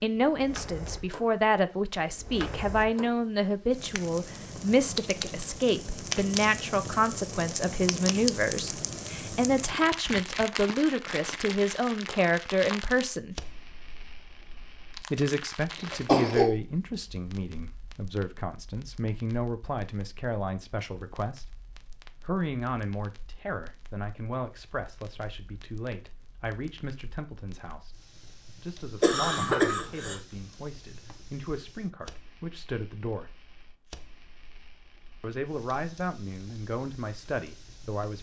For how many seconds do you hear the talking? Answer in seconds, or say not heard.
34 s.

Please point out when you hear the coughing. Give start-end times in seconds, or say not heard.
15.9-16.5, 29.0-30.1.